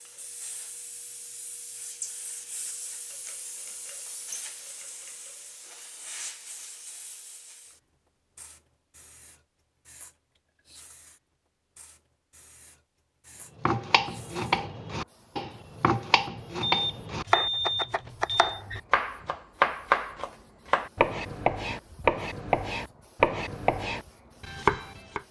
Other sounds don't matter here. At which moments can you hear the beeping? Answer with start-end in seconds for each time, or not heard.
16.6-18.5.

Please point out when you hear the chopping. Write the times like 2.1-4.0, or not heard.
13.6-25.2.